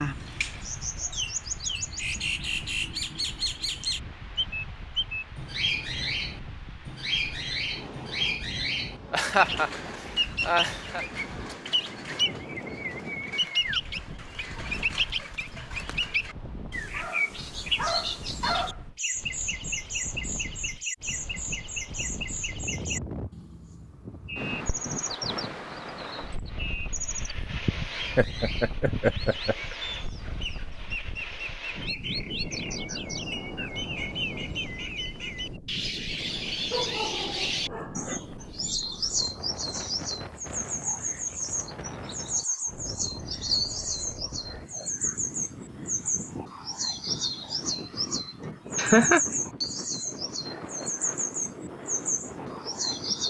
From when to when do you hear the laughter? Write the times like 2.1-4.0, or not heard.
9.1-9.7, 10.4-11.1, 27.4-29.8, 48.4-49.2.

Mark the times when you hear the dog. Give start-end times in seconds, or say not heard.
16.9-18.8, 36.7-38.2.